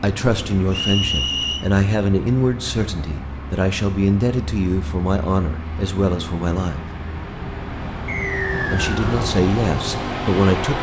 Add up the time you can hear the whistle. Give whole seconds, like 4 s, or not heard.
2 s.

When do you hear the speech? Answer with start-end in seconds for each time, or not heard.
0.0-6.8, 8.7-10.7.